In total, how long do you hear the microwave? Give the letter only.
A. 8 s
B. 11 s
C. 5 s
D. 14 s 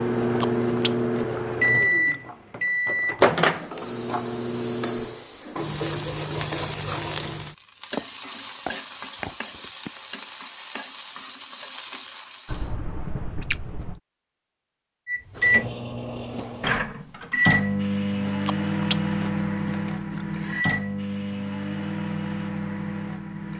D.